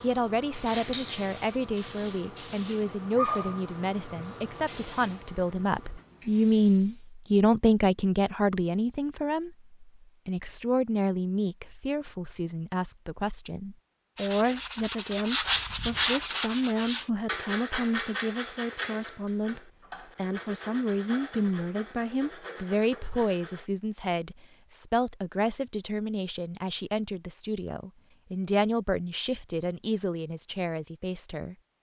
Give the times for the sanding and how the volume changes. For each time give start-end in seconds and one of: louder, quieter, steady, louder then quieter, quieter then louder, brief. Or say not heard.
14.2-23.7 quieter.